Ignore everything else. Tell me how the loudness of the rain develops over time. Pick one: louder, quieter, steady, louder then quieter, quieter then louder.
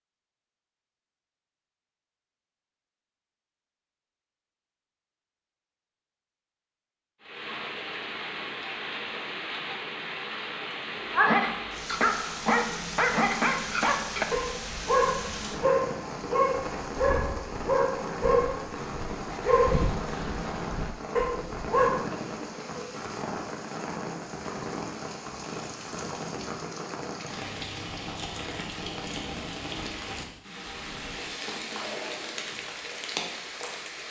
steady.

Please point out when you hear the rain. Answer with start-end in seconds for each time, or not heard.
7.2-34.0.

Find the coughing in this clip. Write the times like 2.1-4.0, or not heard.
22.0-23.1.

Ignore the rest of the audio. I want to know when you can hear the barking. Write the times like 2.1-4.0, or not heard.
11.1-22.1.